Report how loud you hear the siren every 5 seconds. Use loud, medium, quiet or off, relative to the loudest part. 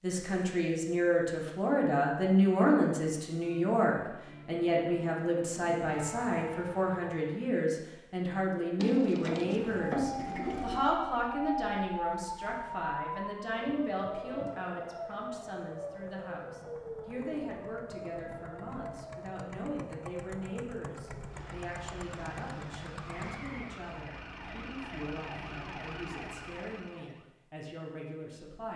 medium, medium, loud, medium, medium, medium.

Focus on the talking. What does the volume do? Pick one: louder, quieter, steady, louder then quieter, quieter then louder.
quieter.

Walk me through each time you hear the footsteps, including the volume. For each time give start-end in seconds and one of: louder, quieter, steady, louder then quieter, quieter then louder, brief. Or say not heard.
not heard.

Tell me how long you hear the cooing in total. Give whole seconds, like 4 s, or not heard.
2 s.